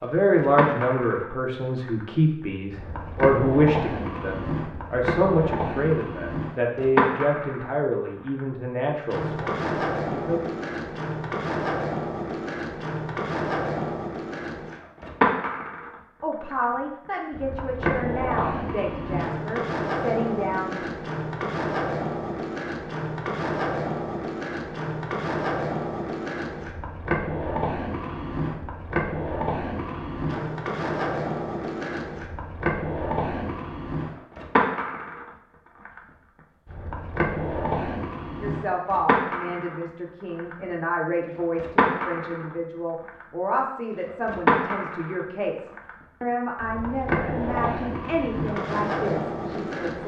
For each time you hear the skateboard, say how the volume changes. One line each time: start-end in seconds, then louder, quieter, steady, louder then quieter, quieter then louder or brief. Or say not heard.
0.2-50.0 steady.